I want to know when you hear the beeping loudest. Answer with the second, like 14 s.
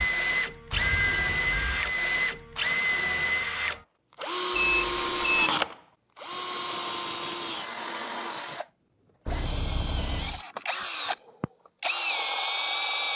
5 s.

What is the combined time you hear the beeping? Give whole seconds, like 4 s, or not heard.
3 s.